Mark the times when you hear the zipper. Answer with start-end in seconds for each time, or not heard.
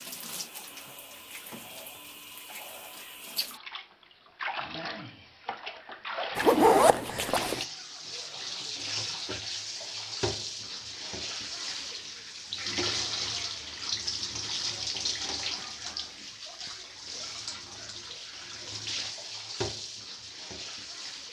6.3-7.6.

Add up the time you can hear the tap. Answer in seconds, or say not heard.
21 s.